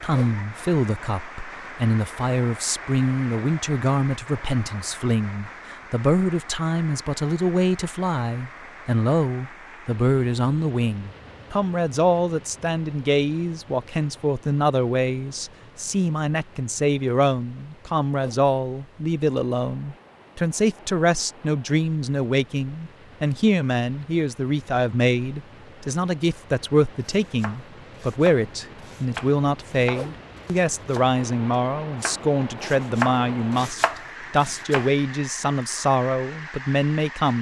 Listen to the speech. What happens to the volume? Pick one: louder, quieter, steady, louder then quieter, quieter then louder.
steady.